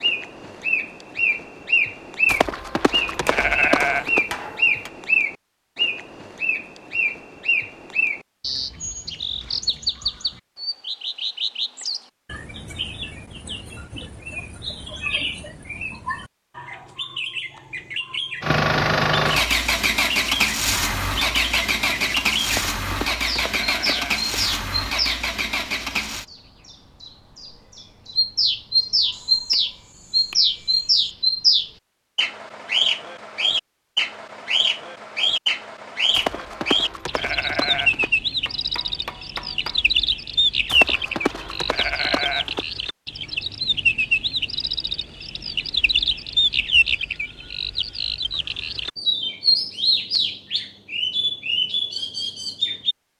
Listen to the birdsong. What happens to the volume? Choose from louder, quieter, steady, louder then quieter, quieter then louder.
quieter then louder.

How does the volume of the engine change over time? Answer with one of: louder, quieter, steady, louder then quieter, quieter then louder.
quieter.